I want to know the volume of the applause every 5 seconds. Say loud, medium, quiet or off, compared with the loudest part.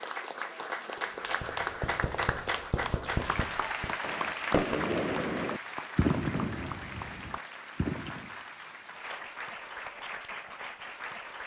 loud, medium, medium.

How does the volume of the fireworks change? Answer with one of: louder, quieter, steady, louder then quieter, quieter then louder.
louder then quieter.